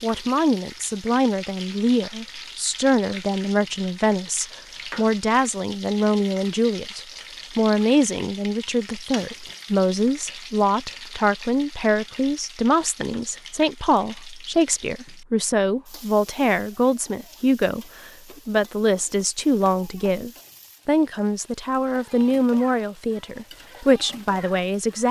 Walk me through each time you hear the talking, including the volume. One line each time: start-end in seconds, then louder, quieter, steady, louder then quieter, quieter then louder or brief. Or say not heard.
0.0-25.0 steady.